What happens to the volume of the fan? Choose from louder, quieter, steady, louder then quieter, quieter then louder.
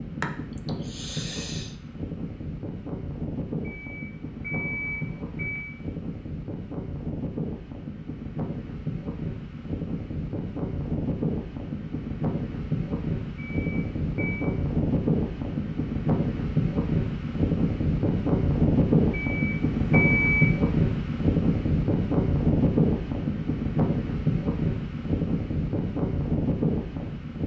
louder.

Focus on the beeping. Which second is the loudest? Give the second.
20 s.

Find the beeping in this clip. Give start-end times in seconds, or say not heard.
3.6-5.7, 13.3-14.4, 19.1-20.5.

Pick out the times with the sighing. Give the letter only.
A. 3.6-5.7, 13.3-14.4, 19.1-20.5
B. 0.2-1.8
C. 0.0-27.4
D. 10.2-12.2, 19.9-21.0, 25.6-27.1
B.